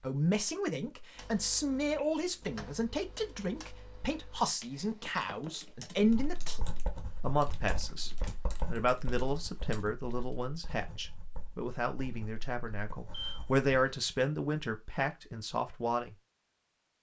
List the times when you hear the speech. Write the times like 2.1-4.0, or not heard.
0.0-16.1.